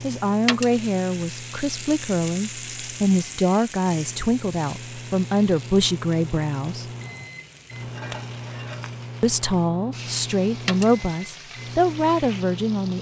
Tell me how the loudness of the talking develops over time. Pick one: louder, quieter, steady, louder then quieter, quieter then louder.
steady.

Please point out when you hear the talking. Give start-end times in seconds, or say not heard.
0.0-6.8, 9.2-12.9.